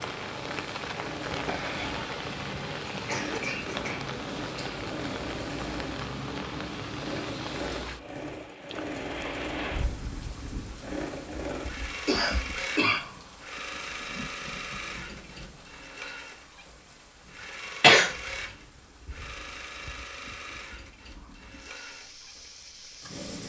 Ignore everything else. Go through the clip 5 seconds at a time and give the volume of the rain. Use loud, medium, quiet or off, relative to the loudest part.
loud, loud, medium, quiet, quiet.